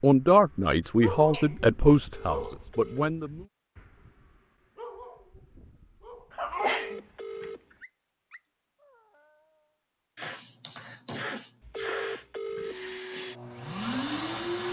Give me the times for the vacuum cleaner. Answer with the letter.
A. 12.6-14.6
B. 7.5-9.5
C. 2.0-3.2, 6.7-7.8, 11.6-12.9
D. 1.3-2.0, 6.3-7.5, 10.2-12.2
A.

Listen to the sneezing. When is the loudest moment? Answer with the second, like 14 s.
7 s.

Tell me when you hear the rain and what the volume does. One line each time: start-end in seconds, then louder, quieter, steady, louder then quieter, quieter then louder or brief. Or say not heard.
not heard.